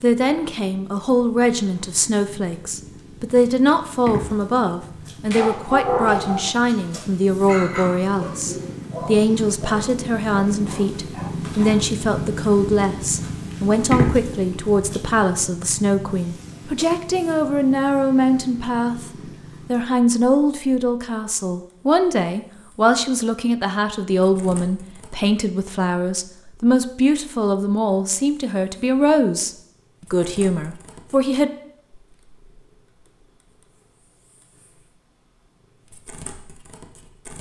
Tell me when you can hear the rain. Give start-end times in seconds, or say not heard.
not heard.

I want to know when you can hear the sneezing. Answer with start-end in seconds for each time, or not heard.
not heard.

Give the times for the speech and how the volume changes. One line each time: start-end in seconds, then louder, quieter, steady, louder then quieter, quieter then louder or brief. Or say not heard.
0.0-29.5 steady
30.1-31.5 brief.